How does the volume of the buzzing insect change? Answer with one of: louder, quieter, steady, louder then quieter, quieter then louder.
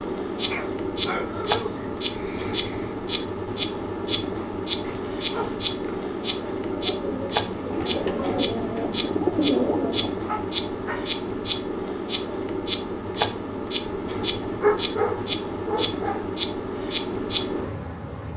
steady.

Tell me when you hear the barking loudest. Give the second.
15 s.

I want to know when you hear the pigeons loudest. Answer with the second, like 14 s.
9 s.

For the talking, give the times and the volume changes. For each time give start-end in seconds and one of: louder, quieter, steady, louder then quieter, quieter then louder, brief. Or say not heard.
not heard.